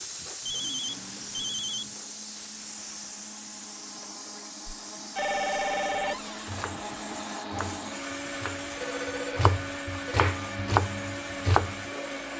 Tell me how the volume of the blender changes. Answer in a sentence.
The volume of the blender goes up.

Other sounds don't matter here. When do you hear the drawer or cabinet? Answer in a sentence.
The drawer or cabinet can be heard from 6.0 to 6.5 s.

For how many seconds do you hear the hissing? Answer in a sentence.
You can hear the hissing for 12 seconds altogether.